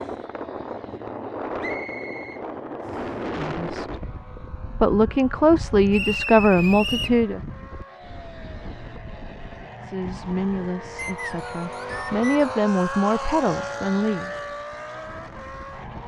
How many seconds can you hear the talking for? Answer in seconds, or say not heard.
8 s.